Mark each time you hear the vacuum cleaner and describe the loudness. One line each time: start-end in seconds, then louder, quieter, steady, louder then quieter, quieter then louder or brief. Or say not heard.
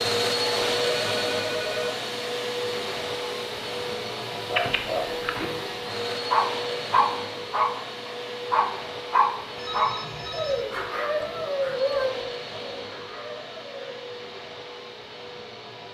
0.0-15.9 quieter.